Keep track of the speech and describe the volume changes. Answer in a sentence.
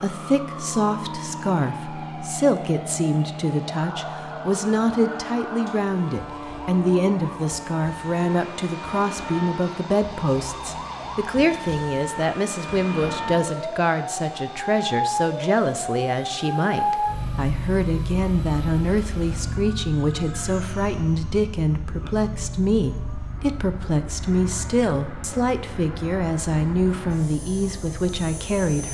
The volume of the speech stays about the same.